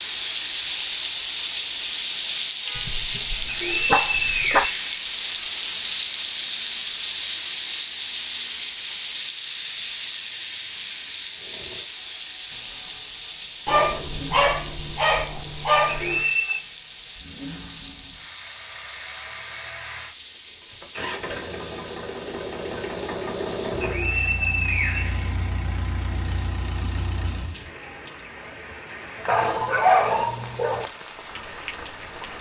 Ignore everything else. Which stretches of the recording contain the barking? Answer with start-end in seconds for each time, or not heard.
2.8-4.7, 13.7-16.2, 29.2-30.9.